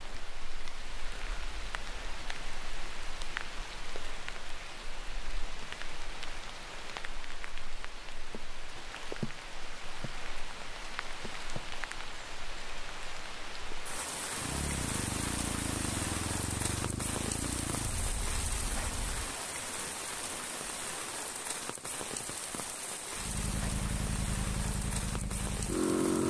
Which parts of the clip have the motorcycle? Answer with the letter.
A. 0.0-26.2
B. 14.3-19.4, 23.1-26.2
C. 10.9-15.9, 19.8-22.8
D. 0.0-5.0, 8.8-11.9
B.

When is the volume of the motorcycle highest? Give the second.
26 s.